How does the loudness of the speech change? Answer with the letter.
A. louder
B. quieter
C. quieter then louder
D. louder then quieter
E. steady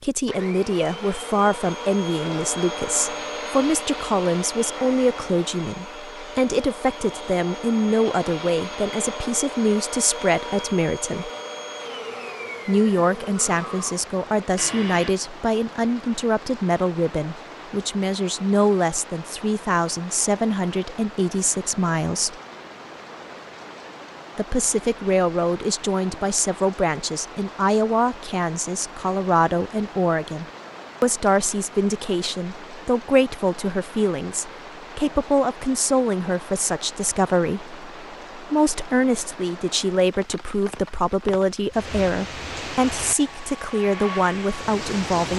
E.